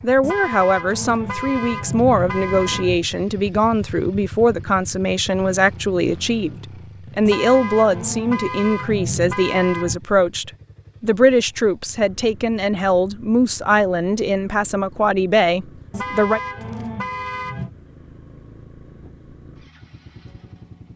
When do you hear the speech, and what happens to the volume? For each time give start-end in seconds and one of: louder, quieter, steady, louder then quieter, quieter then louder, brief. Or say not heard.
0.0-16.4 steady.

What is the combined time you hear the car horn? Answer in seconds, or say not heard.
7 s.